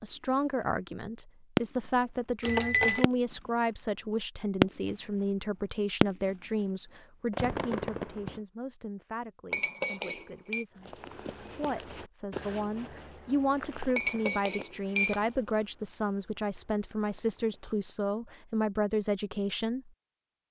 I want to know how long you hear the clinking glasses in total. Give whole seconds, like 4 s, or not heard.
3 s.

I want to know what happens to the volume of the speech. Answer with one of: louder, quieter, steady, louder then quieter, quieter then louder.
quieter then louder.